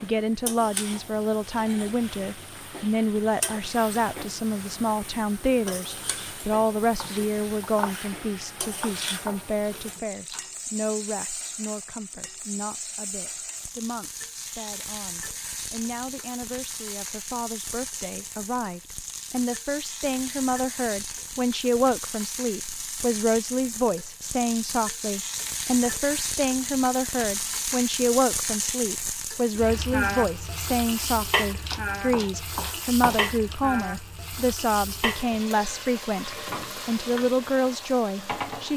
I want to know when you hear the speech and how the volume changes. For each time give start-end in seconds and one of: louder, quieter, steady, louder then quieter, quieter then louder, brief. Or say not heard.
0.0-38.7 quieter then louder.